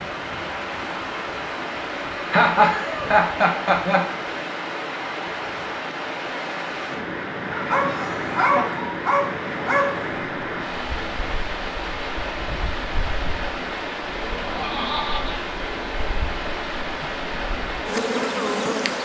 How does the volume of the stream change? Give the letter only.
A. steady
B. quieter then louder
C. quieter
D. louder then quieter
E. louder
A.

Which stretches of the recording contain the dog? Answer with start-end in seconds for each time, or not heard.
7.5-10.2.